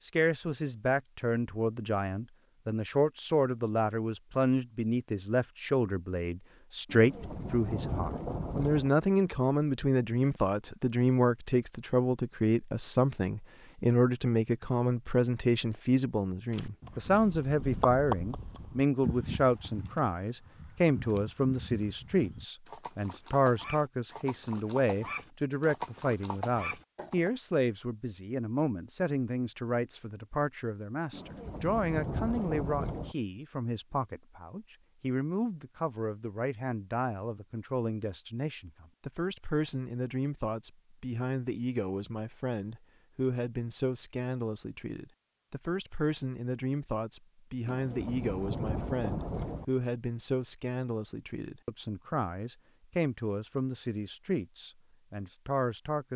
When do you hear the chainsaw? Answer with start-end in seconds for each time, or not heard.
not heard.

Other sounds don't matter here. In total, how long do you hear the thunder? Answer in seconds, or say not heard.
6 s.